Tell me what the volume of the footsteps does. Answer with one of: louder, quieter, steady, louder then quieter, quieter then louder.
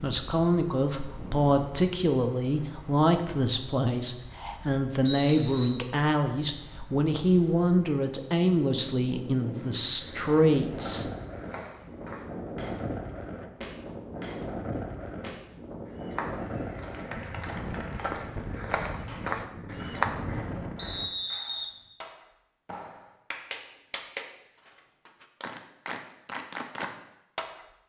louder.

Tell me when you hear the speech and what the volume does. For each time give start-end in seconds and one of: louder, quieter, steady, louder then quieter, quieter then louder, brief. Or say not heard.
0.0-11.1 steady.